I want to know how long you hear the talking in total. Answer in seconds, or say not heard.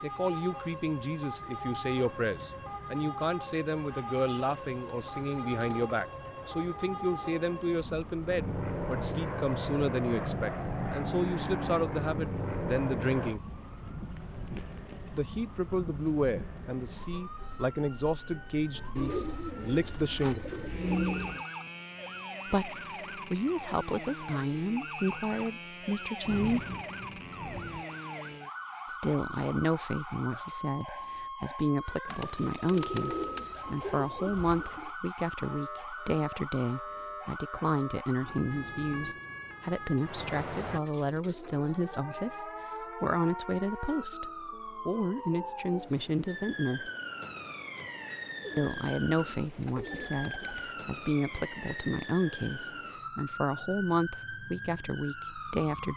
48 s.